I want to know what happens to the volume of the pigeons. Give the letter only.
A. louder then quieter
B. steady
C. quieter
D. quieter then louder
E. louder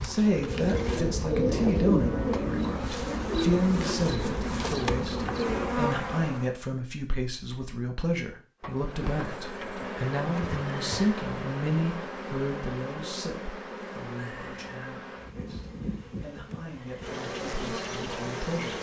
C.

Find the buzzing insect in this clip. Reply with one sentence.
The buzzing insect can be heard from 0.0 to 6.5 s and from 8.6 to 18.7 s.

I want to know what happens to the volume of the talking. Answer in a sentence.
The volume of the talking goes down.